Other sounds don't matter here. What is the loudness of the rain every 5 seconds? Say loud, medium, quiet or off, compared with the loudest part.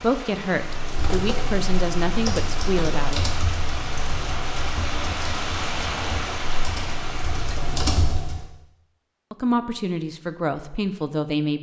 loud, loud, off.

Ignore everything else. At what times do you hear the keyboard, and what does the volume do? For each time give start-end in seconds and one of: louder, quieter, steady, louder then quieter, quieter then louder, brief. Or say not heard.
0.6-8.4 quieter then louder.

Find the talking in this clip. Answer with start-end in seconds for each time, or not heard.
0.0-3.3, 9.3-11.5.